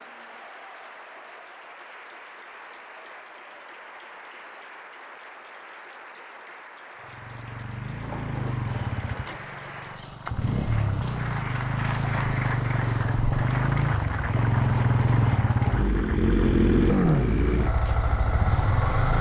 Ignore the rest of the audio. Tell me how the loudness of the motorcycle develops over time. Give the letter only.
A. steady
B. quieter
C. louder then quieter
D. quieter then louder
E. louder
E.